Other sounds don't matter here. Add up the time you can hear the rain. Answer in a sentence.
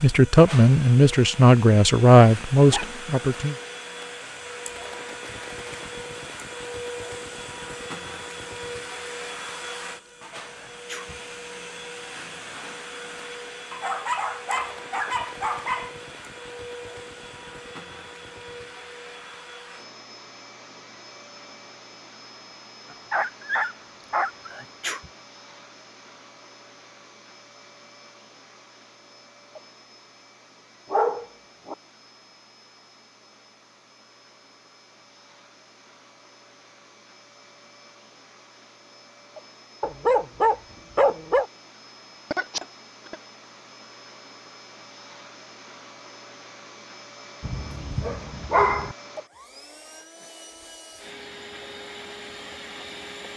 You can't hear the rain here.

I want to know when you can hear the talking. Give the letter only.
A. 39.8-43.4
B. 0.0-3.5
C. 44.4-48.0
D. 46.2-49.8
B.